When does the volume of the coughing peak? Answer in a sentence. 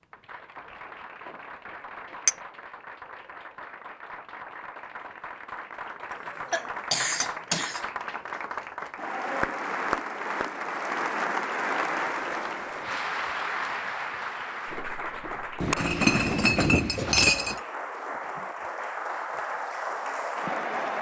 The volume of the coughing peaks at 7 seconds.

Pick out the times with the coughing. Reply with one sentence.
The coughing can be heard from 6.1 to 7.8 s and from 16.9 to 17.6 s.